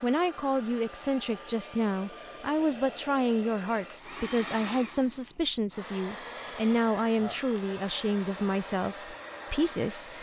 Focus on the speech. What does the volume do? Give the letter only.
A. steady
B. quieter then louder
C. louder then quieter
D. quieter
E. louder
A.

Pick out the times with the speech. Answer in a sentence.
The speech can be heard from 0.0 to 10.1 s.